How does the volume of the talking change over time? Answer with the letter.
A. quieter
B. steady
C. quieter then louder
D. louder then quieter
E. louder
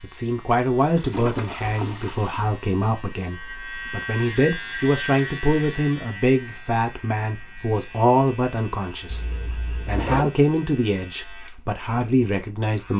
B.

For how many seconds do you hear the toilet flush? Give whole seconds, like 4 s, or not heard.
3 s.